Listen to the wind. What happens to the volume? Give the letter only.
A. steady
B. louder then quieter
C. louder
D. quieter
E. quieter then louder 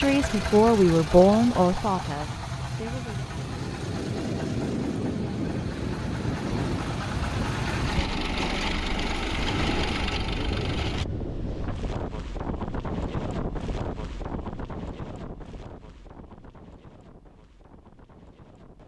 D.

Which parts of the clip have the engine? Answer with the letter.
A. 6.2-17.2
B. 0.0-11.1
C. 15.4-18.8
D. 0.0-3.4
B.